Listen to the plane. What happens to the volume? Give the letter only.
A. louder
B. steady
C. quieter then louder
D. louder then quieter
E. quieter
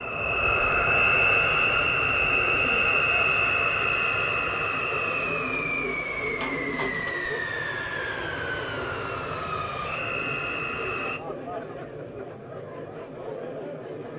E.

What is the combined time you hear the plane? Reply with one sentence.
You can hear the plane for 11 seconds altogether.